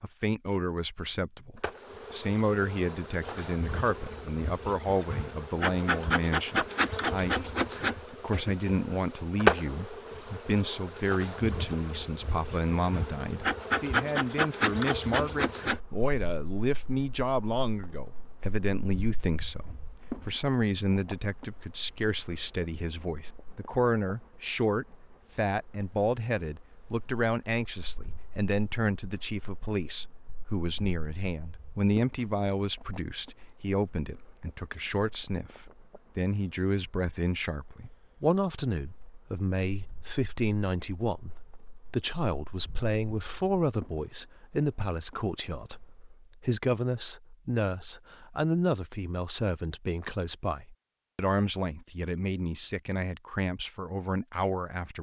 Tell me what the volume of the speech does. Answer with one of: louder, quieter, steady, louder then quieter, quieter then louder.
steady.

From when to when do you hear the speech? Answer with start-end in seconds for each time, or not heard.
0.0-7.5, 8.1-54.9.